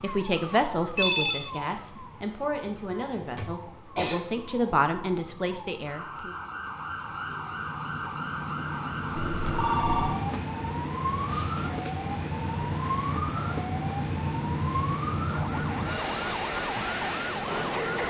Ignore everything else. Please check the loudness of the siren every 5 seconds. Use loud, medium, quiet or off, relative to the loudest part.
medium, loud, loud, loud.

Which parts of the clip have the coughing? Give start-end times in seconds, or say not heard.
3.2-4.2, 11.2-11.9.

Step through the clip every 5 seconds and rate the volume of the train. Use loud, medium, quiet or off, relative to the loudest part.
quiet, medium, loud, loud.